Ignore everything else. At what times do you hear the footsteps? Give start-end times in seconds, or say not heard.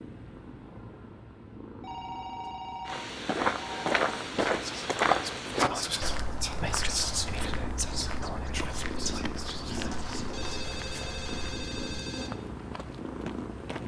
2.9-13.8.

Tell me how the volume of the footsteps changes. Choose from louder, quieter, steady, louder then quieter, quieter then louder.
quieter.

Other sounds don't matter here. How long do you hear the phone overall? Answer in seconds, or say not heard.
5 s.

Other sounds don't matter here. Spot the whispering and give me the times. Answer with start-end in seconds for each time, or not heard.
4.5-10.5.